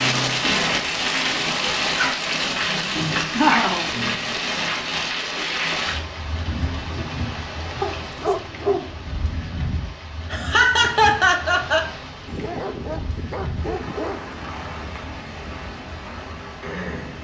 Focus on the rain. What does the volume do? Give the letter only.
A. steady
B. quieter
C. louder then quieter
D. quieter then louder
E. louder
B.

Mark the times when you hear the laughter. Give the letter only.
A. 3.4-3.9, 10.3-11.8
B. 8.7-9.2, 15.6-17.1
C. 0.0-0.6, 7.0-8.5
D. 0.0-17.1
A.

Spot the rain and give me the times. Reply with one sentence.
You can hear the rain from 0.0 to 17.1 s.